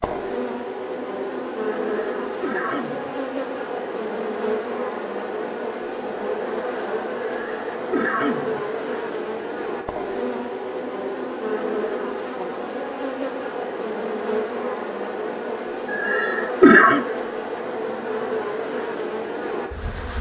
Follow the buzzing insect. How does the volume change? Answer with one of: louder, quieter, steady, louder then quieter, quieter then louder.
steady.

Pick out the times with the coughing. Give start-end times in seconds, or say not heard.
1.9-3.1, 7.2-8.6, 15.8-17.1.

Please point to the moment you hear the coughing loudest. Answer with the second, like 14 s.
17 s.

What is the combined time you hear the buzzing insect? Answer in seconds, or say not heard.
20 s.